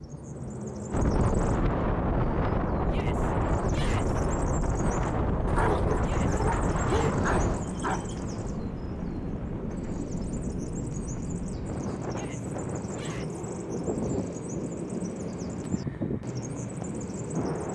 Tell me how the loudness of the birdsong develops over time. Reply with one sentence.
The volume of the birdsong stays about the same.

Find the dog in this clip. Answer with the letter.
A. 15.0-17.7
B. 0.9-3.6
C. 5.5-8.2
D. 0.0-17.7
C.